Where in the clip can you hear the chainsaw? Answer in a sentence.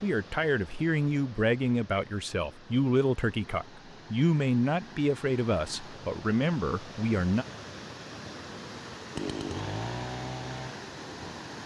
You can hear the chainsaw from 9.2 to 11.6 s.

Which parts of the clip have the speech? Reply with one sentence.
You can hear the speech from 0.0 to 7.5 s.